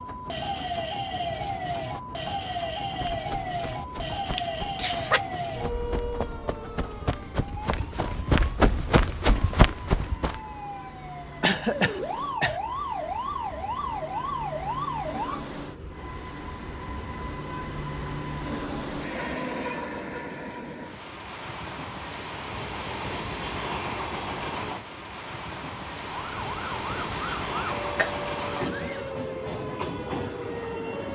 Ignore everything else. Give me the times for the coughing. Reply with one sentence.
The coughing can be heard from 4.3 to 5.2 s, from 11.4 to 12.6 s and from 27.1 to 29.1 s.